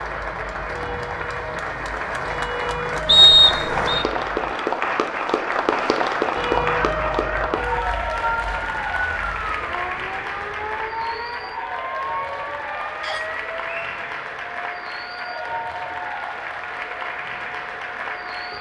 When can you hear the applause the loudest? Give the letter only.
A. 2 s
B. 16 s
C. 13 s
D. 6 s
D.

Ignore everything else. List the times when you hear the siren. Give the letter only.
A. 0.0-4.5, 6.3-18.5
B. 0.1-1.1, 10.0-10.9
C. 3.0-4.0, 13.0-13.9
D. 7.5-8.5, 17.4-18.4
A.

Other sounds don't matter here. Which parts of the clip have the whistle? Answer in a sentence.
The whistle can be heard from 3.0 to 4.0 s and from 13.0 to 13.9 s.